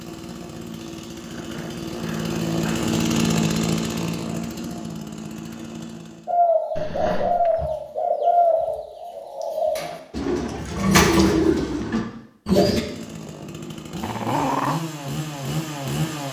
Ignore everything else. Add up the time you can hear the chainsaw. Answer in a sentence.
You can hear the chainsaw for 10 seconds altogether.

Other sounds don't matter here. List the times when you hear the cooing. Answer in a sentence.
The cooing can be heard from 6.2 to 12.8 s.